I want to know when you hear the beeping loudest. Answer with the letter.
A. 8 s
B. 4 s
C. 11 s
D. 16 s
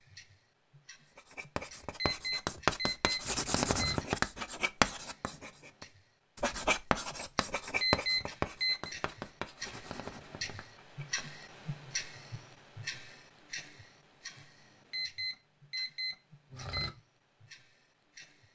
A.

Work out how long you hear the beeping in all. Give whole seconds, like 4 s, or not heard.
5 s.